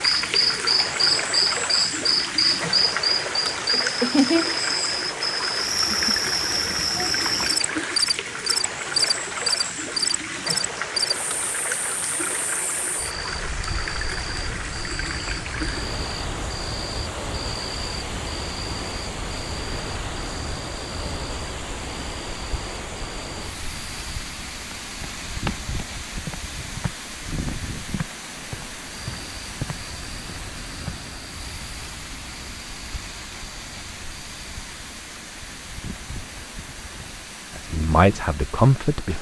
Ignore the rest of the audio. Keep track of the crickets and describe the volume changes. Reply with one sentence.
The loudness of the crickets goes down.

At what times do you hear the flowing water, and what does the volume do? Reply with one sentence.
The flowing water can be heard from 0.0 to 39.1 s, getting quieter.